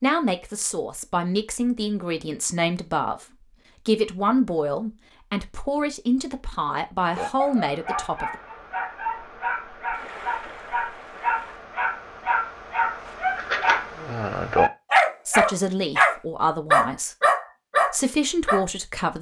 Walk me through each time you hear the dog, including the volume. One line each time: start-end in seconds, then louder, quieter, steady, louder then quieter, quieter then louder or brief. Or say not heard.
7.1-18.6 louder.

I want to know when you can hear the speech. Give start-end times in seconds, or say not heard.
0.0-3.2, 3.9-8.3, 15.2-17.1, 17.9-19.1.